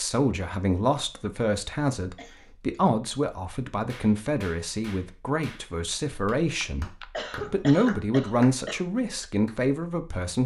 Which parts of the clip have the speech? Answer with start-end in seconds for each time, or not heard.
0.0-10.4.